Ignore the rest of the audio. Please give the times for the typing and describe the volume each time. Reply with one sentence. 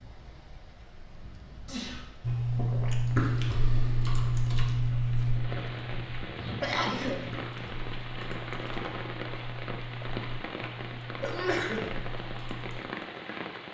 You can hear the typing from 2.2 to 12.8 s, getting quieter.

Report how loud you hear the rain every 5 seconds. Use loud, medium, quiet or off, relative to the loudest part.
quiet, loud, loud.